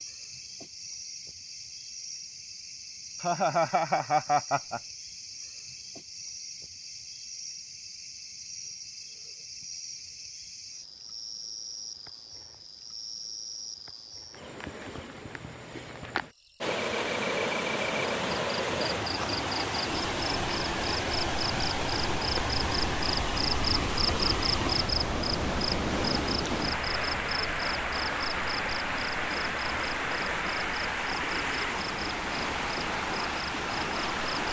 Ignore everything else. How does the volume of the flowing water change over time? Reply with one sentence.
The volume of the flowing water stays about the same.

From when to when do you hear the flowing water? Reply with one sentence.
You can hear the flowing water from 16.6 to 34.4 s.